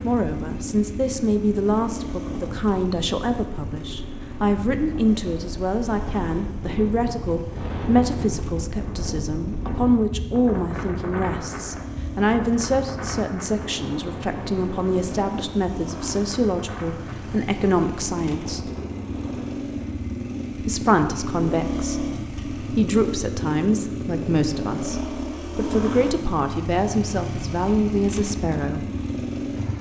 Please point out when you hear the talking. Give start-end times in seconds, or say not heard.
0.0-18.7, 20.6-28.9.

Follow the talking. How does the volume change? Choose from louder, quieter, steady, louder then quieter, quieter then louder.
steady.